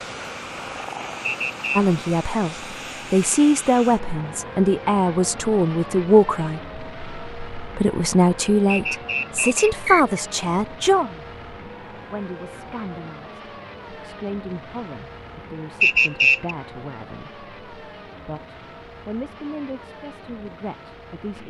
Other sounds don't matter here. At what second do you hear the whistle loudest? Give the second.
16 s.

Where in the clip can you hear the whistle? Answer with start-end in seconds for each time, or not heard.
1.2-1.8, 8.7-10.2, 15.8-16.6.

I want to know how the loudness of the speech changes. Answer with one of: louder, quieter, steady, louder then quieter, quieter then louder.
quieter.